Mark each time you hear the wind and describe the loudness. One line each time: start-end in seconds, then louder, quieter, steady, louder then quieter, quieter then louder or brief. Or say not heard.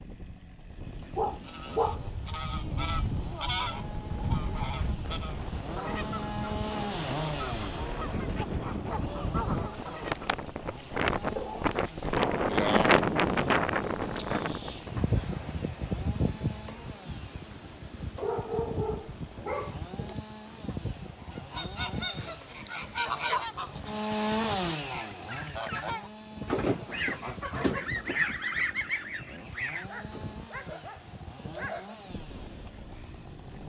0.0-33.6 louder then quieter.